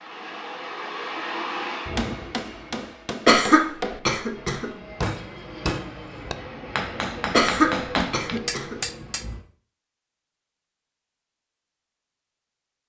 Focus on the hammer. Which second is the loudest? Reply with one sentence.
The volume of the hammer peaks at 8 seconds.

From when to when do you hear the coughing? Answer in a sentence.
You can hear the coughing from 3.2 to 4.7 s and from 7.3 to 8.8 s.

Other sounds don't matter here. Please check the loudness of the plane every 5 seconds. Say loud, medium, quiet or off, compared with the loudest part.
loud, loud, off.